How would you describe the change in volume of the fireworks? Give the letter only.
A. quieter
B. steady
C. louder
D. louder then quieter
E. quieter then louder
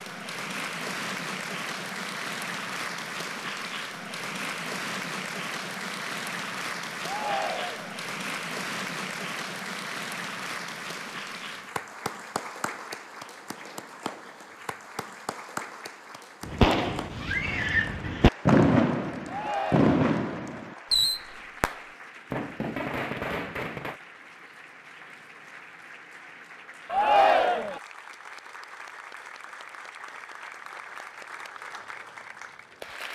D.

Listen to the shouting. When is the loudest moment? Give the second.
27 s.